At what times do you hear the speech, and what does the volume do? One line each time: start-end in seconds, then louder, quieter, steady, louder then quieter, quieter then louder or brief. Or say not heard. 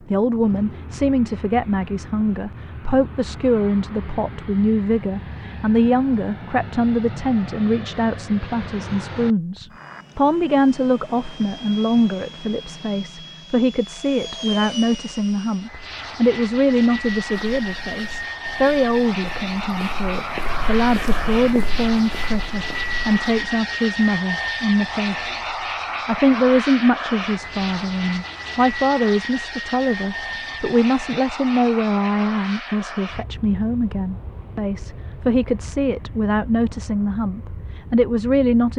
0.1-38.7 steady.